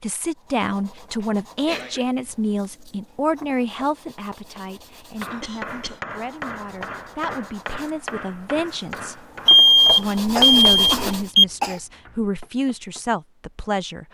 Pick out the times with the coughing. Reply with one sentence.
The coughing can be heard from 1.2 to 2.0 s, from 5.4 to 6.0 s and from 10.3 to 11.8 s.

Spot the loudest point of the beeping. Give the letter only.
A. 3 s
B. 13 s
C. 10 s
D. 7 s
C.